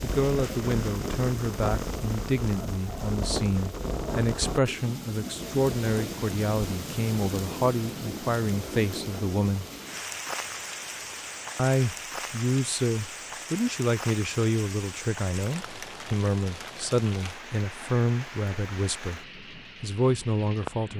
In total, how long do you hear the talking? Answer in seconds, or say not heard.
19 s.